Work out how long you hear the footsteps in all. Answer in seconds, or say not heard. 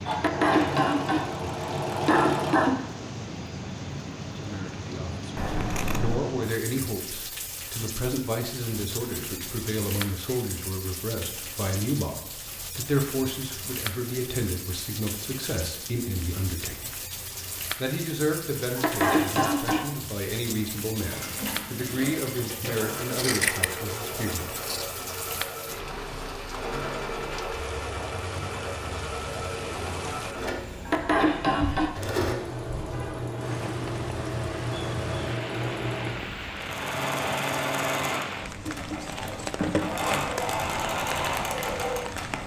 not heard.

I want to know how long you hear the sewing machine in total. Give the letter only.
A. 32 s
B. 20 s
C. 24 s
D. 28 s
C.